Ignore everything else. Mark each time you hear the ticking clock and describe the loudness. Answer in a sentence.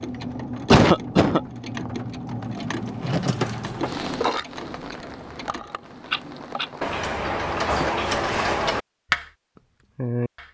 You can hear the ticking clock from 0.0 to 9.3 s, getting louder; and briefly from 9.9 to 10.4 s.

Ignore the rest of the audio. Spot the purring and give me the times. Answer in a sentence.
You can't hear the purring here.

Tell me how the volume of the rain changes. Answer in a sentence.
The volume of the rain goes up, then down.